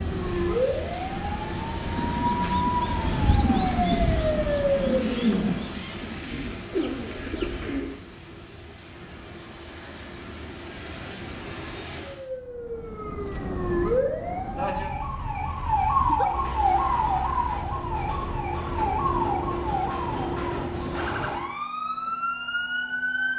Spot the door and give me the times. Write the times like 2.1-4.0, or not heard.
not heard.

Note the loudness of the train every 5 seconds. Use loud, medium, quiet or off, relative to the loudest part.
medium, medium, medium, loud, loud.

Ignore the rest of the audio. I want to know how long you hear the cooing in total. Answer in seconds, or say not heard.
6 s.